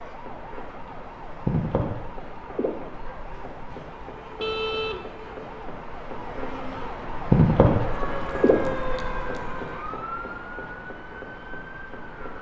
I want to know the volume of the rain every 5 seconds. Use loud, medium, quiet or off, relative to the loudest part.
medium, loud, quiet.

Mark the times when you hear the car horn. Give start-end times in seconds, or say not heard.
4.3-5.0.